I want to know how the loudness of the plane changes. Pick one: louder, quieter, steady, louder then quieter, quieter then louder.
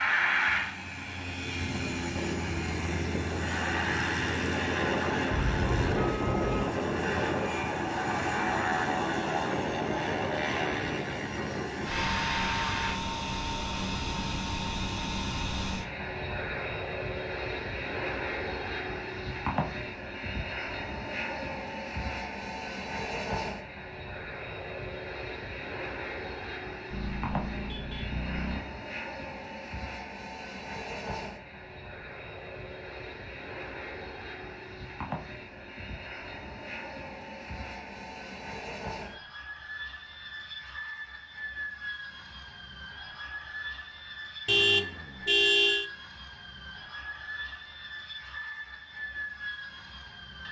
quieter.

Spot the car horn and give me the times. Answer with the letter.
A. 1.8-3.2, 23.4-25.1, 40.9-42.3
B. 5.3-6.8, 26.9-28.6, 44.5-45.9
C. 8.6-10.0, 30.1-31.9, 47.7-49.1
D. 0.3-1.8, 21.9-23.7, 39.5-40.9
B.